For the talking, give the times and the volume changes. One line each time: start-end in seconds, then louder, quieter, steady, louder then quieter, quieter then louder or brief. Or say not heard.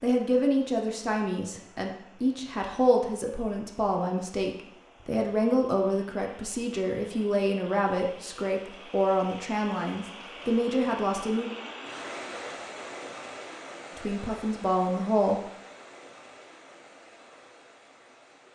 0.0-11.5 steady
13.9-15.4 brief.